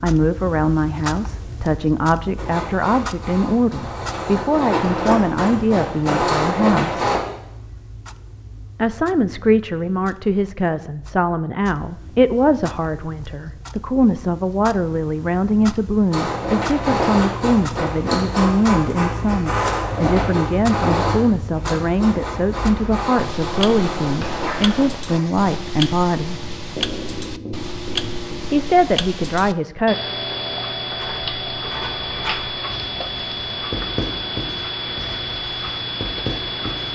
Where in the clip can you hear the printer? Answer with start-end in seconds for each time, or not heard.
2.4-7.2, 16.1-25.4.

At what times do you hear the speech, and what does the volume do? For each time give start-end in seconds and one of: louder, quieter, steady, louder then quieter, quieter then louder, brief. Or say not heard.
0.0-7.1 steady
8.8-26.4 steady
28.5-29.9 brief.